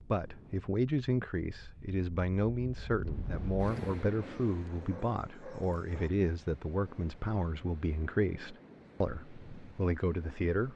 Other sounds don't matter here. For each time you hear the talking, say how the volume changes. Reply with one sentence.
You can hear the talking from 0.1 to 10.7 s, at a steady volume.